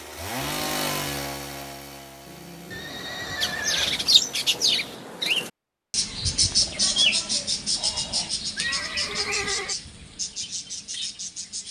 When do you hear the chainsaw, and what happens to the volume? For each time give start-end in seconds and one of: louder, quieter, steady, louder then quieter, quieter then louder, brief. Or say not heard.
0.0-5.0 quieter.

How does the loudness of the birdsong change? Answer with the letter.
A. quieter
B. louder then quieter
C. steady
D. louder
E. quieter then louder
A.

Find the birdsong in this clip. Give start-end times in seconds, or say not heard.
3.4-11.6.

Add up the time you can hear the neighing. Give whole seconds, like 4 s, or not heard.
3 s.